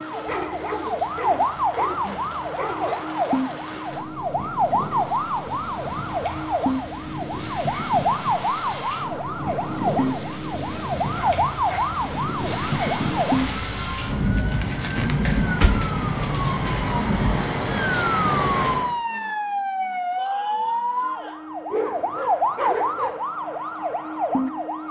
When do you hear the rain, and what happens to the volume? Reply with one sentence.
The rain can be heard from 0.0 to 18.9 s, getting louder.